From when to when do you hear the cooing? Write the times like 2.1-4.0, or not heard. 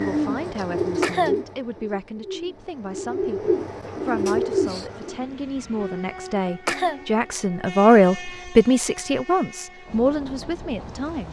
0.0-5.2.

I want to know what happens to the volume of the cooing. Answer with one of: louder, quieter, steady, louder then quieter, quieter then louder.
quieter then louder.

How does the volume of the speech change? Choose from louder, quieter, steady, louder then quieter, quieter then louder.
louder then quieter.